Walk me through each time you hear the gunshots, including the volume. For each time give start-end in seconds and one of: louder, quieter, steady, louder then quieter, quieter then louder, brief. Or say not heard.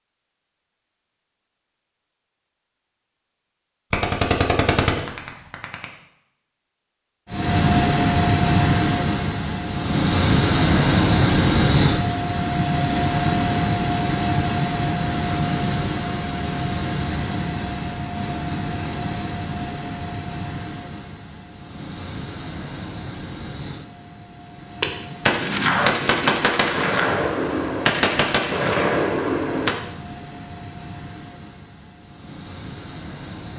3.9-5.8 brief
24.8-29.8 steady.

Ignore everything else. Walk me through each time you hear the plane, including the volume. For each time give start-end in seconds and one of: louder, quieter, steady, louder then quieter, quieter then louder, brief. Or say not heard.
7.3-33.5 quieter.